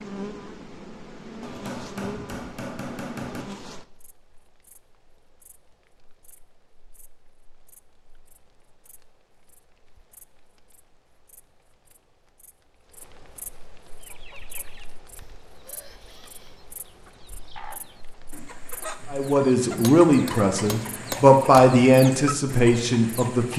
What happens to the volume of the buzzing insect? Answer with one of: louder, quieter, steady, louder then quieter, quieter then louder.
quieter then louder.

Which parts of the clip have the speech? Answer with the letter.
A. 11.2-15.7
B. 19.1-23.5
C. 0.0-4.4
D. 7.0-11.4
B.